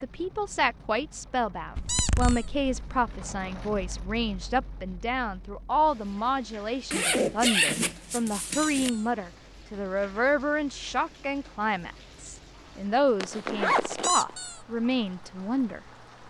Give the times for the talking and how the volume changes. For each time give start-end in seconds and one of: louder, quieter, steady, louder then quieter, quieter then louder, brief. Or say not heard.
0.0-15.8 steady.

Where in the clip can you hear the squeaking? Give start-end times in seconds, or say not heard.
1.9-2.5, 8.5-9.1, 14.0-14.6.